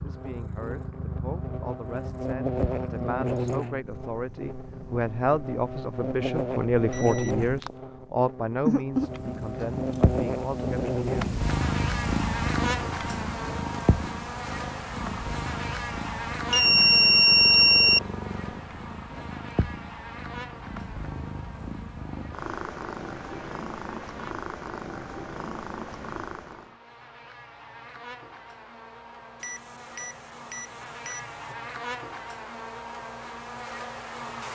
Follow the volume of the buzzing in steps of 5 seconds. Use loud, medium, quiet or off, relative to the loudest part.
loud, loud, loud, medium, quiet, quiet, medium.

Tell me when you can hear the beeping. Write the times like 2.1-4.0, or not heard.
6.9-7.8, 16.5-18.0, 29.4-31.6.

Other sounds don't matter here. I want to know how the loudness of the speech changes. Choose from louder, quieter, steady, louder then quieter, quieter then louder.
louder then quieter.